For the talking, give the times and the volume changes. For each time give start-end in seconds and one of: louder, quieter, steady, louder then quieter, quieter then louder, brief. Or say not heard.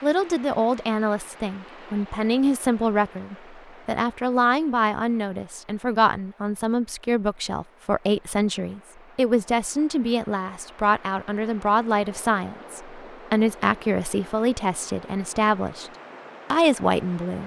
0.0-15.9 steady
16.5-17.4 brief.